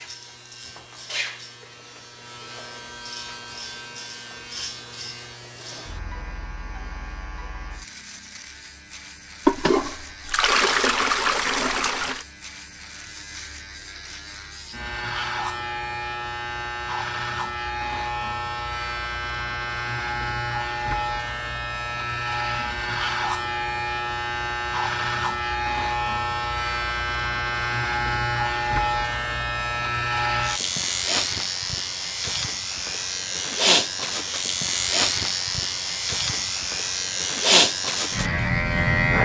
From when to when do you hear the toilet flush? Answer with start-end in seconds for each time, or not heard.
9.4-12.2.